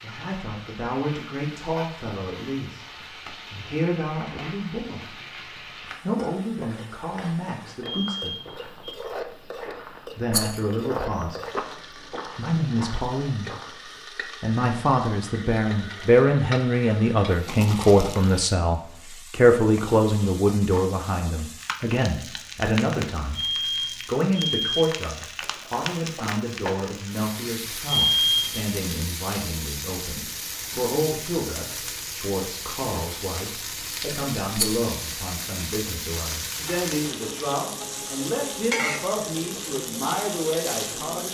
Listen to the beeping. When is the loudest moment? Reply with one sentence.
The volume of the beeping peaks at 28 seconds.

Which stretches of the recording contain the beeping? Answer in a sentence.
You can hear the beeping from 7.8 to 8.9 s, from 23.3 to 24.9 s and from 27.9 to 28.6 s.